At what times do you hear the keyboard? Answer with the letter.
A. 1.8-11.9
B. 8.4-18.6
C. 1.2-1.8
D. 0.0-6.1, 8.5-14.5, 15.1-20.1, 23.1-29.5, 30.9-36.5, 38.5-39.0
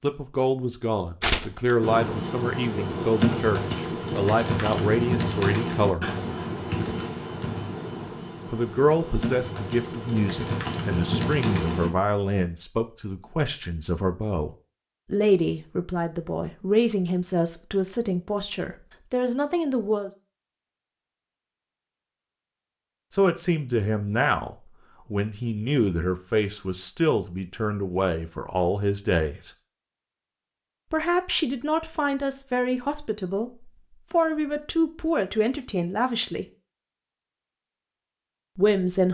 A.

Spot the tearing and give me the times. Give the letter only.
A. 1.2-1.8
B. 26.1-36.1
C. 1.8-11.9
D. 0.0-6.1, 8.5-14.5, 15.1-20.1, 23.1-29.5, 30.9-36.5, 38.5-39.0
A.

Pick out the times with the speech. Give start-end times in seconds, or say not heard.
0.0-6.1, 8.5-14.5, 15.1-20.1, 23.1-29.5, 30.9-36.5, 38.5-39.0.